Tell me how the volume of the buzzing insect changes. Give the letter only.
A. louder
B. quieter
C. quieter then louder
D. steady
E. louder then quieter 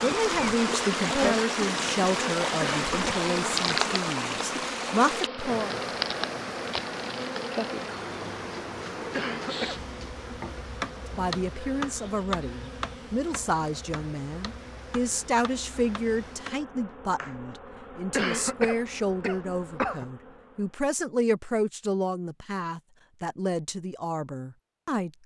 B.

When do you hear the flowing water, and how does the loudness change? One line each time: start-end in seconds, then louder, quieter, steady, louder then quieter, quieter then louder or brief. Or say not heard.
0.0-16.6 quieter.